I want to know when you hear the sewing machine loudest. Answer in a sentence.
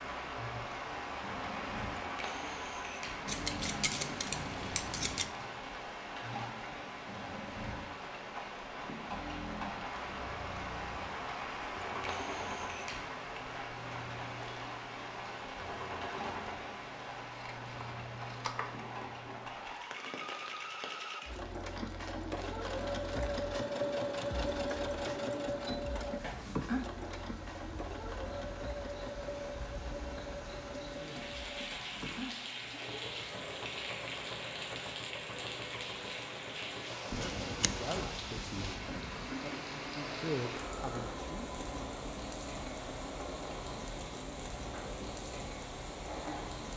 The volume of the sewing machine peaks at 24 seconds.